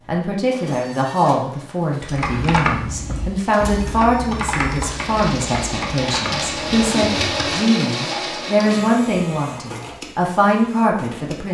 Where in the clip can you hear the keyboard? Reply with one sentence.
The keyboard can be heard from 2.1 to 7.5 s.